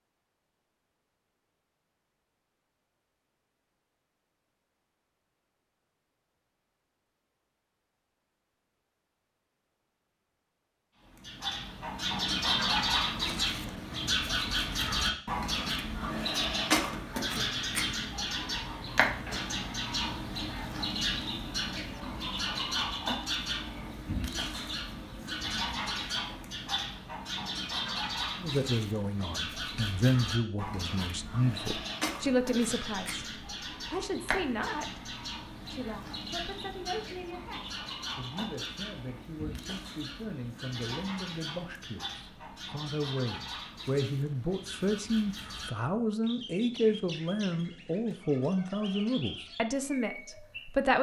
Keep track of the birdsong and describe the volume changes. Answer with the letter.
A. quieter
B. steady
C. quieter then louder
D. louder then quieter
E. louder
A.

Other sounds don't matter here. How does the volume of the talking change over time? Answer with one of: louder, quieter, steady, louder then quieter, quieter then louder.
quieter then louder.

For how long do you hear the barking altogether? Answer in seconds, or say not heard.
not heard.